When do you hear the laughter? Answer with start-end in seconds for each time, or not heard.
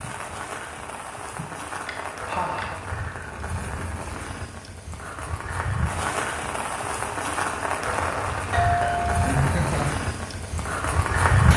1.4-2.8, 9.3-9.9.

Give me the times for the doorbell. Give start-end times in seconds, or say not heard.
8.5-9.3.